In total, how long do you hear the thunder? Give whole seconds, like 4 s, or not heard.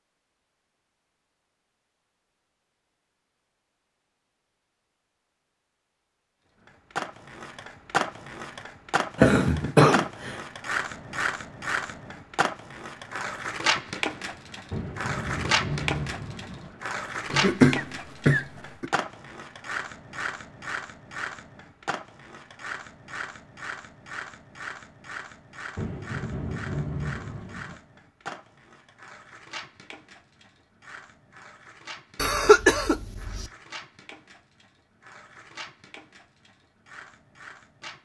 4 s.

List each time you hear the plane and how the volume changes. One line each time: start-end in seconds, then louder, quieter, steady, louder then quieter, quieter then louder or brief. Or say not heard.
not heard.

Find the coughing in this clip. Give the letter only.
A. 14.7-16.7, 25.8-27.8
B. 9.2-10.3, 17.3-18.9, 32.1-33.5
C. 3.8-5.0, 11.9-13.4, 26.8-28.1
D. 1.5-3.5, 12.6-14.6
B.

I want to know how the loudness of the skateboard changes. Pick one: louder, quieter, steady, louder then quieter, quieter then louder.
quieter.